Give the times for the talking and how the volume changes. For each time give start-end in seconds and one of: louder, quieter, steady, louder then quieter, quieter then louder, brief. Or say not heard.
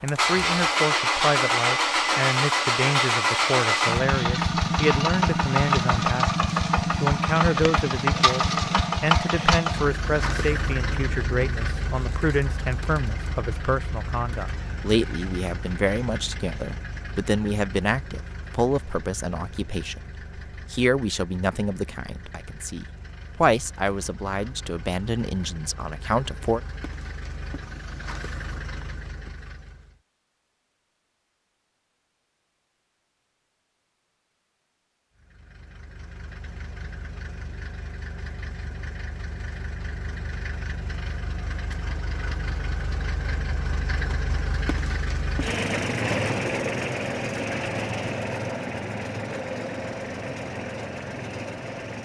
0.0-26.6 steady.